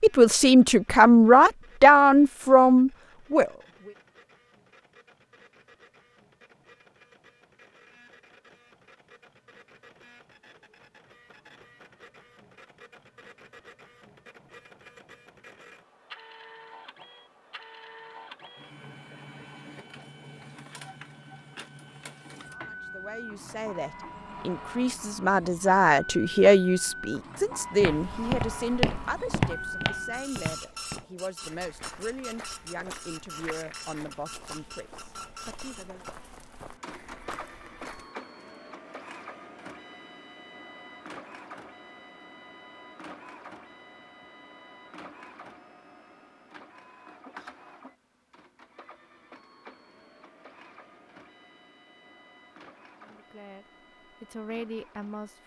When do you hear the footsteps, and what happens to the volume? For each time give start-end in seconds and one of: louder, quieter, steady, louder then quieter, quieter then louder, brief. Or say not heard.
27.8-38.1 quieter.